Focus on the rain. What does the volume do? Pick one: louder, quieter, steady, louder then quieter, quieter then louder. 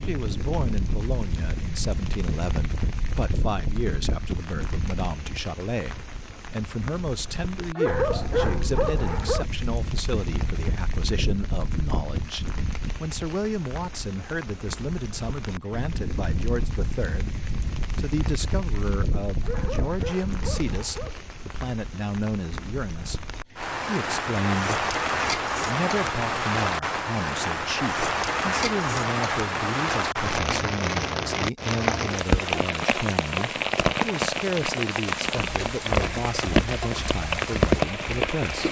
louder.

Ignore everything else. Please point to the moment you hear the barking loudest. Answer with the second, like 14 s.
8 s.